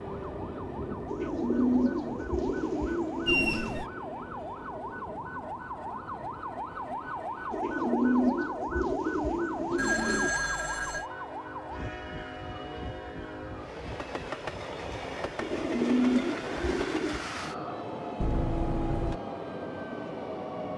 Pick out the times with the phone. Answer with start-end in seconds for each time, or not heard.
3.2-3.9, 9.8-11.1, 18.2-19.2.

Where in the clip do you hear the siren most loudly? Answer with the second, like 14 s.
8 s.